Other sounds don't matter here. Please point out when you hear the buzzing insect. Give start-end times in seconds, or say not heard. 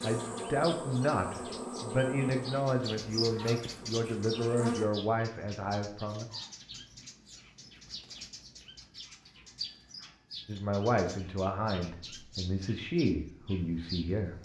0.0-4.8.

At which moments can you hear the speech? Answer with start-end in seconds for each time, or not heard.
0.0-6.2, 10.4-14.3.